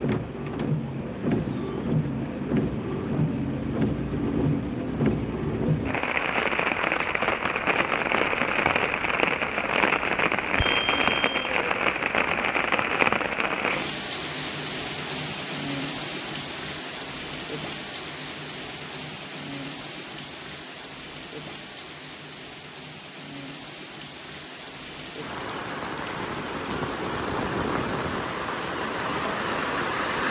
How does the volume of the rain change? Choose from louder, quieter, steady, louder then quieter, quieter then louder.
quieter then louder.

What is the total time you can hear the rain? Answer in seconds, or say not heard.
30 s.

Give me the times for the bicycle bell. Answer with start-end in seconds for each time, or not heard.
10.6-11.5.